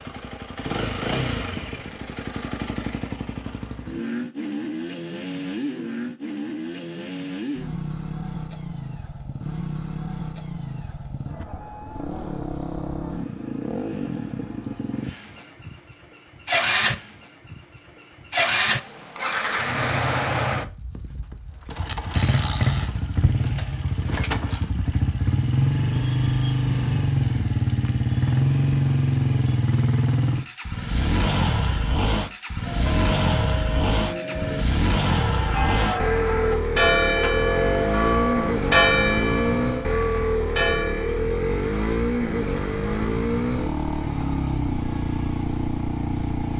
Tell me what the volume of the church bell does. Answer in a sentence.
The volume of the church bell goes up, then down.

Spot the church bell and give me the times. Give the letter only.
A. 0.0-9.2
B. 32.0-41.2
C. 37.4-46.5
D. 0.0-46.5
B.